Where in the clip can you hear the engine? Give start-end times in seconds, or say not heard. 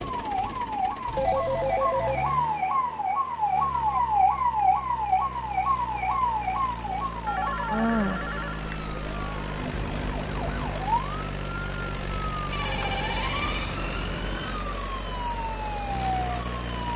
0.0-16.9.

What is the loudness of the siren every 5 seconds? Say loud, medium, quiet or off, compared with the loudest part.
loud, loud, medium, medium.